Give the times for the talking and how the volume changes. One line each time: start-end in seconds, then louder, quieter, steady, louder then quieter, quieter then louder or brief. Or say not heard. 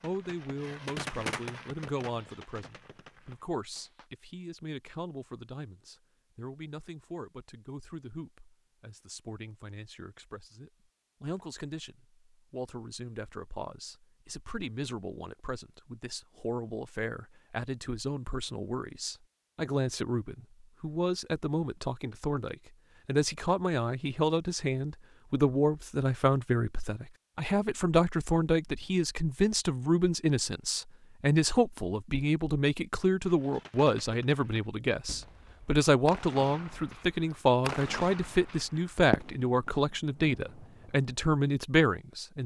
0.0-42.4 louder.